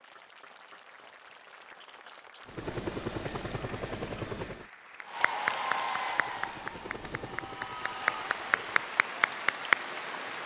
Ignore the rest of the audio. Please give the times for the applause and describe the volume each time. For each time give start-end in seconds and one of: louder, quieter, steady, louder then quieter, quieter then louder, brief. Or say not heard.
0.0-10.4 louder.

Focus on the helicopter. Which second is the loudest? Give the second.
3 s.